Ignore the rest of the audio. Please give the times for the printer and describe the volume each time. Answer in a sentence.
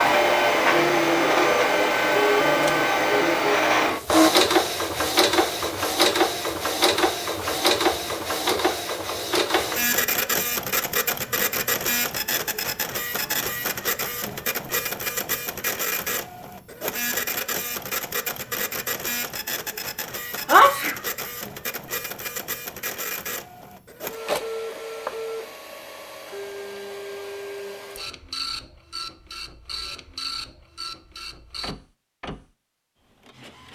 You can hear the printer from 0.0 to 33.7 s, getting quieter.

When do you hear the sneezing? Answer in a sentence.
The sneezing can be heard from 20.4 to 20.9 s.